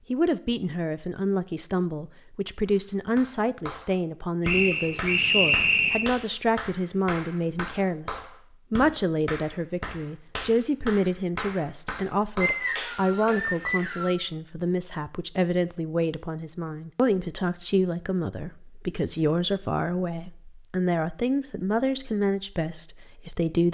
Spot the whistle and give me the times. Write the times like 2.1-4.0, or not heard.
4.5-6.0, 12.4-14.1.